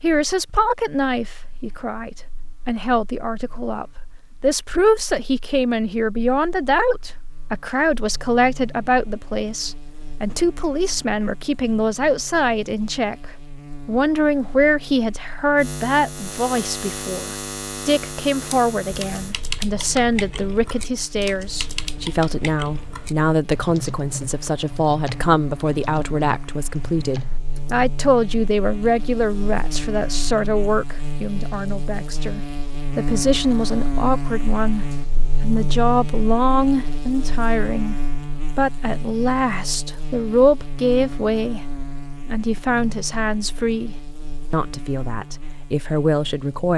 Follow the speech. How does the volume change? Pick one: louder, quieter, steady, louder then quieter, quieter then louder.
steady.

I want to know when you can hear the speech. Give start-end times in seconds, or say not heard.
0.0-46.7.